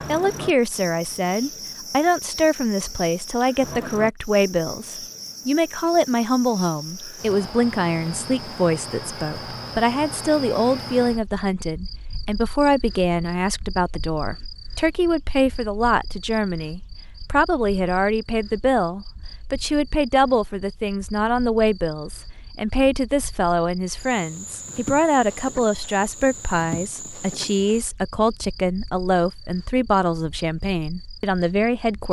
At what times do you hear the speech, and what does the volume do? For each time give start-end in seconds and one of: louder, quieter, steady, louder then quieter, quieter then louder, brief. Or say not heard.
0.1-32.0 steady.